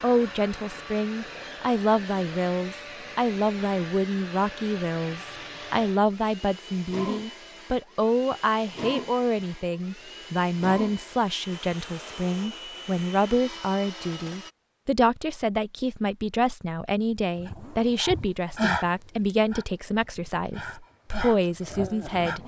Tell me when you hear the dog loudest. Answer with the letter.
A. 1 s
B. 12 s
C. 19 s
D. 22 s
C.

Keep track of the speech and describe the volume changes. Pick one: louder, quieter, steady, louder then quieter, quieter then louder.
steady.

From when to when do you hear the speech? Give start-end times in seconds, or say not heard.
0.0-22.4.